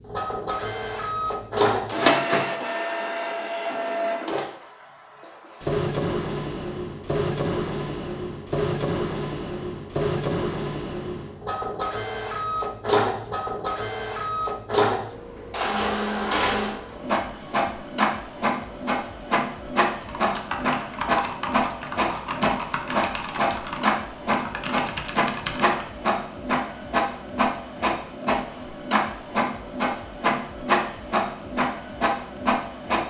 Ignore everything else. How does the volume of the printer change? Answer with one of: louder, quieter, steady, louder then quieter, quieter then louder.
steady.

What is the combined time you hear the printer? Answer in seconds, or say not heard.
33 s.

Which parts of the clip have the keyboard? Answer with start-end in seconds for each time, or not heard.
20.0-25.9.